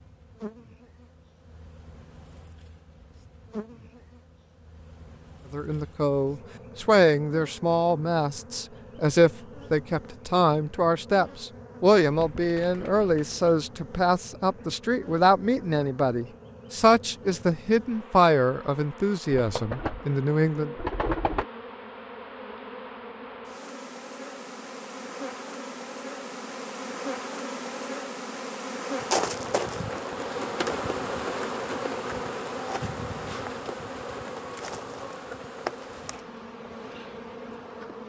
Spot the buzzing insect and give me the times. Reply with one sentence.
The buzzing insect can be heard from 0.0 to 38.0 s.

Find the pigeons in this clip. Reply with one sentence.
The pigeons can be heard from 12.0 to 13.5 s and from 19.4 to 21.4 s.